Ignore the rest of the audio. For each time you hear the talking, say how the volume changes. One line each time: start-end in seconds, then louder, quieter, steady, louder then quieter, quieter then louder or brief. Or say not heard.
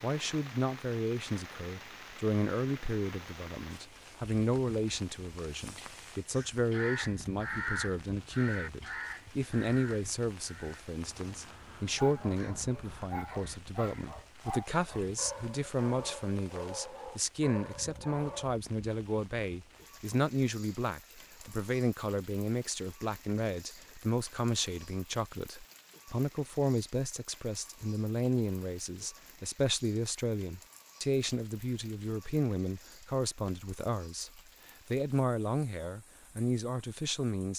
0.0-37.5 steady.